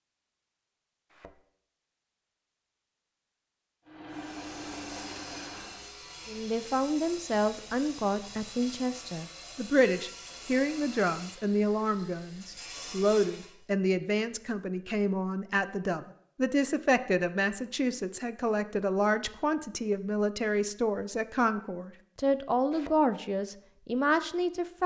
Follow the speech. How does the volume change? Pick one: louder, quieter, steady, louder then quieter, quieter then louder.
steady.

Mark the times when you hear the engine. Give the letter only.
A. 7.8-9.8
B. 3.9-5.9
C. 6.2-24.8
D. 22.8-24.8
B.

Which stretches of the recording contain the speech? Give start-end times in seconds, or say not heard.
6.2-24.8.